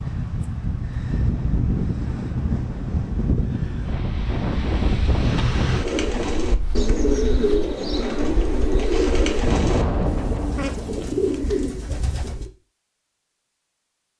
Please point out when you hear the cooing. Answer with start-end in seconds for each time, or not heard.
5.7-12.5.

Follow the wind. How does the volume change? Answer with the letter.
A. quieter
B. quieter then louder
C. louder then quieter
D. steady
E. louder
B.